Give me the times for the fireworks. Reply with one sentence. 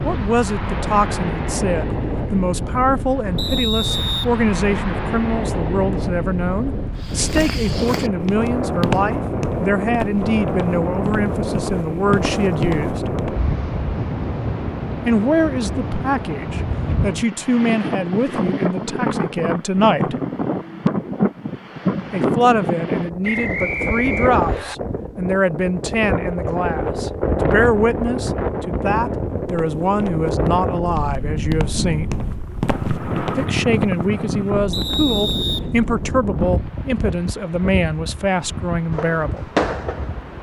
The fireworks can be heard from 38.9 to 40.3 s.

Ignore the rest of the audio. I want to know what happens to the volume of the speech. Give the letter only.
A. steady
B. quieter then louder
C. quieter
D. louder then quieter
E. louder
A.